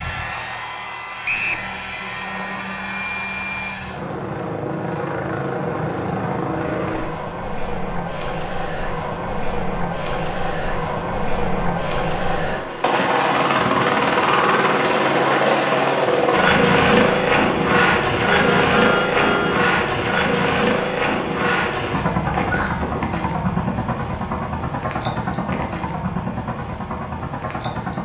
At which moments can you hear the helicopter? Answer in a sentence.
The helicopter can be heard from 0.0 to 28.0 s.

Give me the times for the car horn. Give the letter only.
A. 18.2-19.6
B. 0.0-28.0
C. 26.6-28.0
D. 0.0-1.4
A.